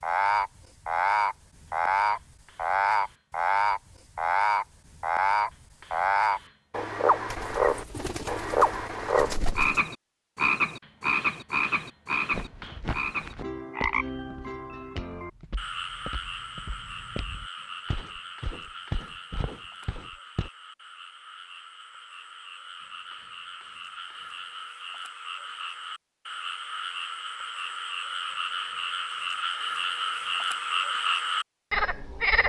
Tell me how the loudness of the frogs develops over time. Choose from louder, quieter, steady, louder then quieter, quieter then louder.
quieter then louder.